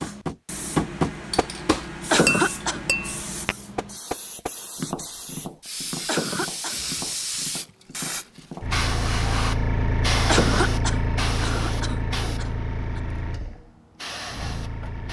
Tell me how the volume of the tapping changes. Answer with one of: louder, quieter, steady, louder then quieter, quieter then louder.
quieter.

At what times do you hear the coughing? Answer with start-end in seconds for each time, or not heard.
2.1-2.8, 6.0-6.8, 10.2-13.0.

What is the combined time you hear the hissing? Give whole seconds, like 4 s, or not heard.
15 s.